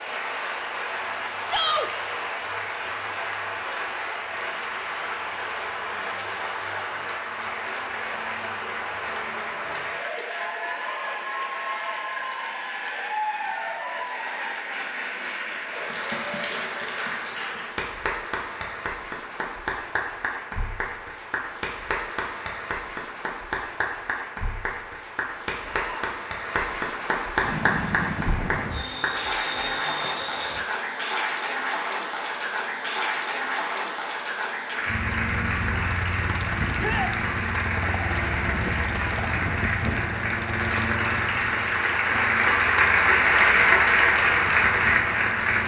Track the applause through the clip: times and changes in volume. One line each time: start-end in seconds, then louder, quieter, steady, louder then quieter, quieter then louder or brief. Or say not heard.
0.0-45.6 louder.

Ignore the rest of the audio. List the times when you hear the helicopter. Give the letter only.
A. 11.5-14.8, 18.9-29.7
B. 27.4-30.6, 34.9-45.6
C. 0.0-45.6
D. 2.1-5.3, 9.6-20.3
B.